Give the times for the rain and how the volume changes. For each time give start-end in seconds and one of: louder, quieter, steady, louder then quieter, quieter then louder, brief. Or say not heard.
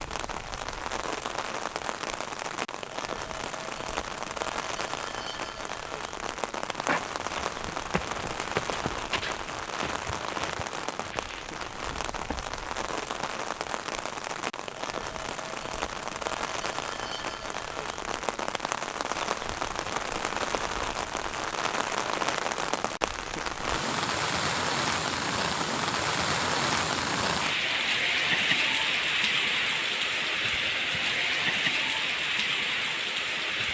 0.0-33.6 louder.